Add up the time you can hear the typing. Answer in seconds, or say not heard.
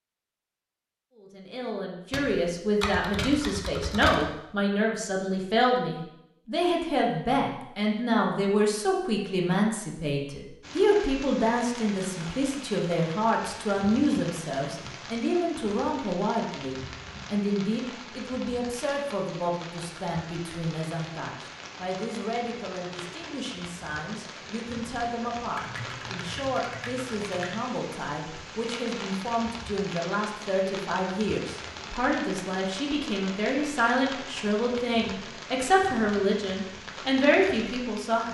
4 s.